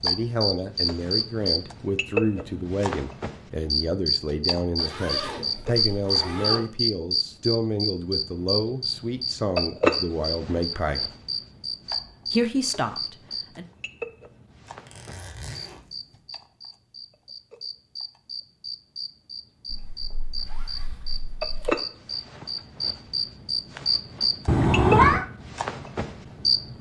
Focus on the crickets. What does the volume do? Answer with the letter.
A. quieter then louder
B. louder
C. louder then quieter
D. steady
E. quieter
A.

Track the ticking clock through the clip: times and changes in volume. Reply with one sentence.
The ticking clock can't be heard in this clip.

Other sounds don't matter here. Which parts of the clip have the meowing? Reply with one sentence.
The meowing can be heard from 24.4 to 25.2 s.